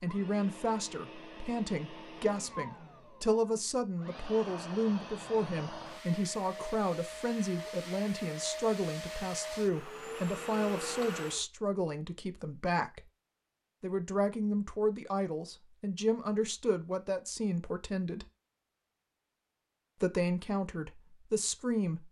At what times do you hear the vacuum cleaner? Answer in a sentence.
You can hear the vacuum cleaner from 0.0 to 11.4 s.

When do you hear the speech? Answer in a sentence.
You can hear the speech from 0.0 to 13.1 s, from 13.8 to 18.2 s and from 20.0 to 22.0 s.